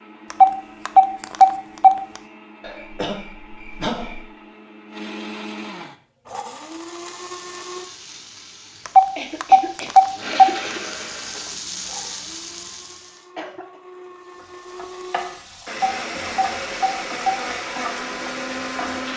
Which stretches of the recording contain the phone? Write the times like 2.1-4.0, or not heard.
0.3-2.0, 8.8-10.6, 15.7-17.4.